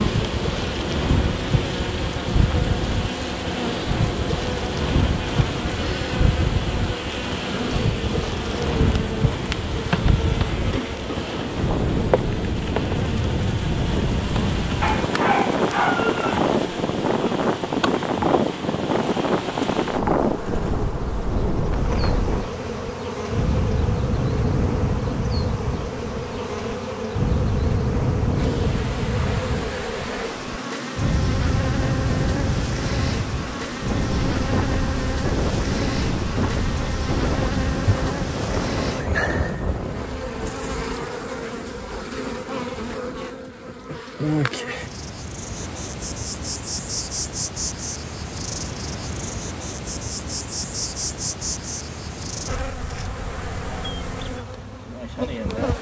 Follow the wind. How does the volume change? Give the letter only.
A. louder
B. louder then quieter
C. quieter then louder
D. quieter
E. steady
E.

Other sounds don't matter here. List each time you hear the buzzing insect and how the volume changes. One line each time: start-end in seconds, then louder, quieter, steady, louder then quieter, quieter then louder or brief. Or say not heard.
0.0-55.7 steady.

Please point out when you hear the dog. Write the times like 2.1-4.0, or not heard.
14.8-16.4.